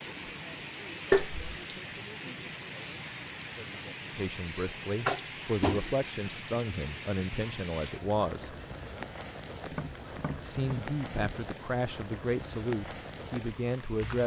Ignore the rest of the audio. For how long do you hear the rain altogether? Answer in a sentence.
The rain can be heard for 14 seconds in total.